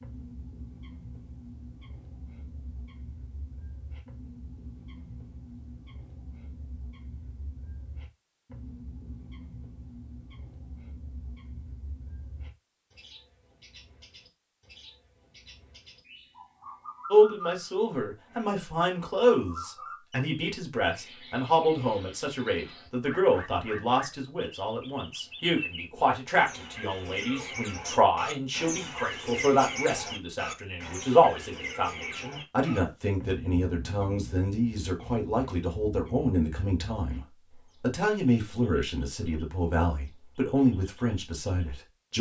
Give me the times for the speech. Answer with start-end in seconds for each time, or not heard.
17.1-37.2, 37.8-42.1.